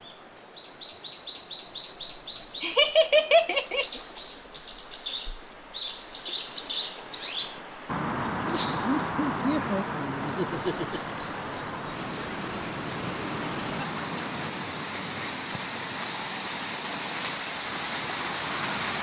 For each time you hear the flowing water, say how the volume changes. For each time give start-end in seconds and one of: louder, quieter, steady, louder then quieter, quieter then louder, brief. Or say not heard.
0.0-18.9 louder.